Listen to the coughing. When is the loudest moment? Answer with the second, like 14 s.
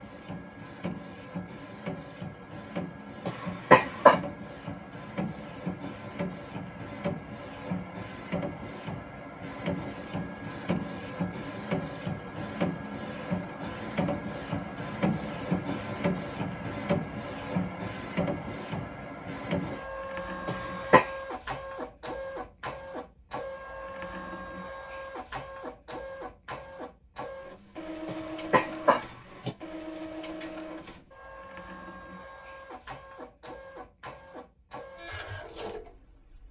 4 s.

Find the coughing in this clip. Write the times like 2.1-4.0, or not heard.
3.2-4.2, 20.4-21.1, 28.1-29.5.